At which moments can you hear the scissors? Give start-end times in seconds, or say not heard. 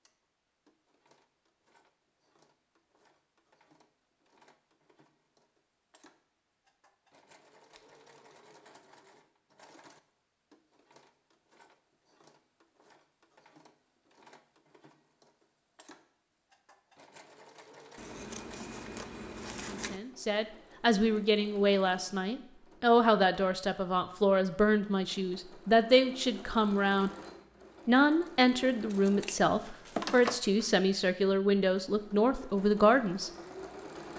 17.9-20.0, 28.9-30.4.